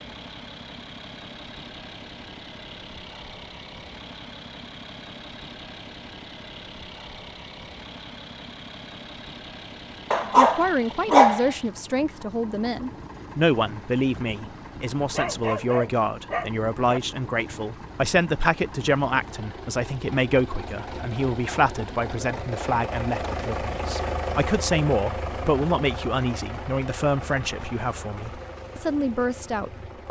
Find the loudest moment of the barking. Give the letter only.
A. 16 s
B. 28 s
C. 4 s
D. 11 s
D.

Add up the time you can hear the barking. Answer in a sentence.
The barking can be heard for 3 seconds in total.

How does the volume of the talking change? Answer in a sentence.
The volume of the talking stays about the same.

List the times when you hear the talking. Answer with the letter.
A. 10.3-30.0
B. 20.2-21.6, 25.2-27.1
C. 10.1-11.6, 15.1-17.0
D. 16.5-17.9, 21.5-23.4
A.